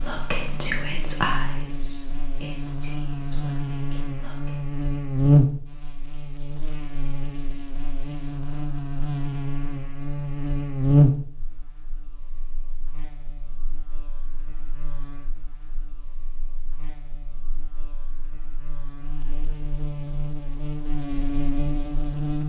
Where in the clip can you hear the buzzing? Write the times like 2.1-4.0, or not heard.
0.0-22.4.